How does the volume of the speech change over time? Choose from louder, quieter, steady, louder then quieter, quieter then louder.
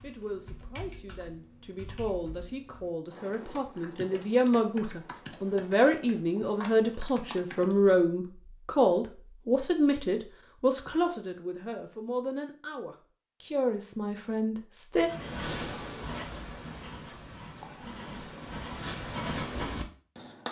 louder then quieter.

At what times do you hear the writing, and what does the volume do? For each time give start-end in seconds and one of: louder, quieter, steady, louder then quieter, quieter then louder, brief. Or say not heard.
14.9-20.4 quieter then louder.